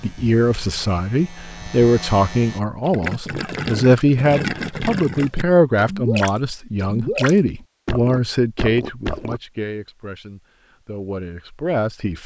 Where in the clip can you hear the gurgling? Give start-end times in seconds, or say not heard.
2.8-9.4.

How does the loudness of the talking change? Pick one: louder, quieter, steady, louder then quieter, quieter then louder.
quieter.